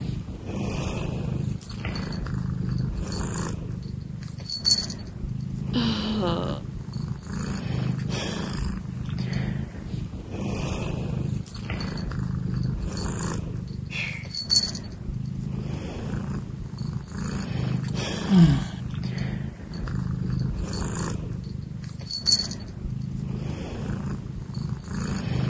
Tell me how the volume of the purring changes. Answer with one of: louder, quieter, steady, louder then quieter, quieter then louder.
steady.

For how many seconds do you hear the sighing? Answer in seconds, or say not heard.
2 s.